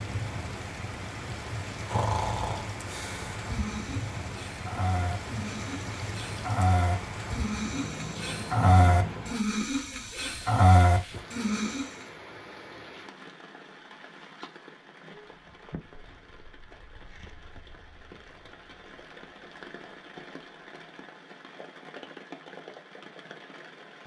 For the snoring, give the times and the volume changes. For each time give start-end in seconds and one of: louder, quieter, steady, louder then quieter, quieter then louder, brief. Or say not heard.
1.9-11.9 louder.